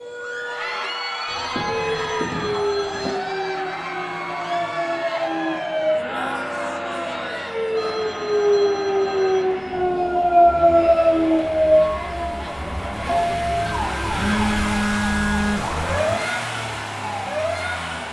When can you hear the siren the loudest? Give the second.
11 s.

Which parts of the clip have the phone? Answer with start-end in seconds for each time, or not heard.
1.2-3.1, 7.8-9.5, 14.1-15.8.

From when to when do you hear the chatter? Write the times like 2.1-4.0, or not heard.
0.1-14.7.